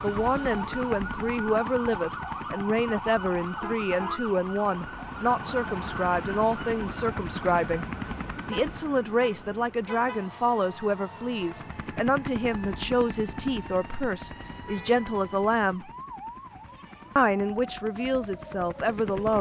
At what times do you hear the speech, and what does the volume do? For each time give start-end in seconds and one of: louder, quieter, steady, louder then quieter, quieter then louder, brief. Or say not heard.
0.0-7.8 steady
8.4-15.9 steady
17.1-19.3 brief.